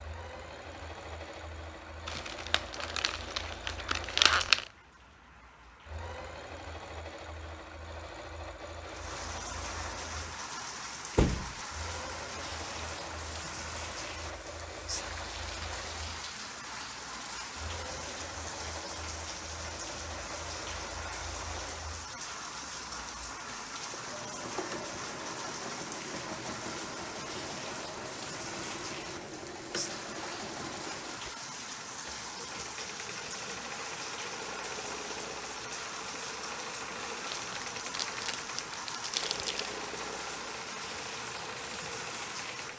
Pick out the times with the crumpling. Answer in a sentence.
You can hear the crumpling from 2.0 to 4.7 s and from 37.2 to 39.7 s.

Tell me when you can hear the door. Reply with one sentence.
The door can be heard from 11.2 to 11.6 s.